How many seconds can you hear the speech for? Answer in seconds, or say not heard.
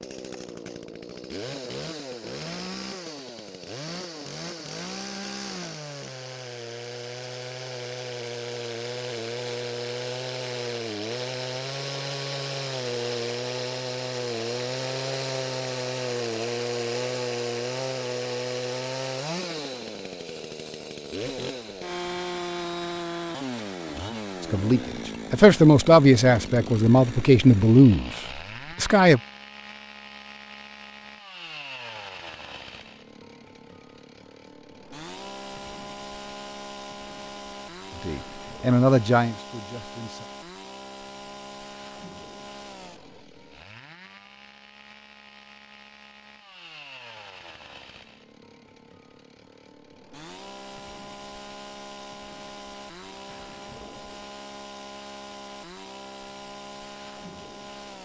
7 s.